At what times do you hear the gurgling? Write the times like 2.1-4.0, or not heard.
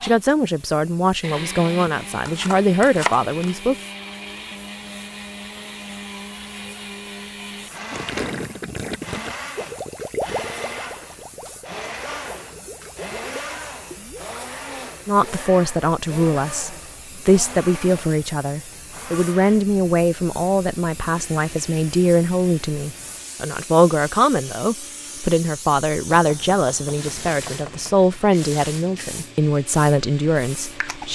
7.9-14.2.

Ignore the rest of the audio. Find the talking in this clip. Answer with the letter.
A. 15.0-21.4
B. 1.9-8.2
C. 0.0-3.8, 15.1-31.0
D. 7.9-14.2
C.